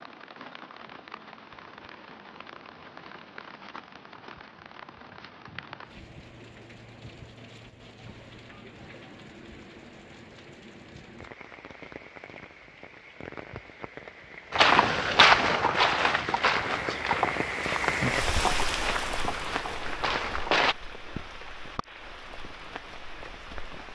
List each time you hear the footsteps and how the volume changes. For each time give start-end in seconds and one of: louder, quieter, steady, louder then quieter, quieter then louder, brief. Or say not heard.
14.5-20.8 quieter.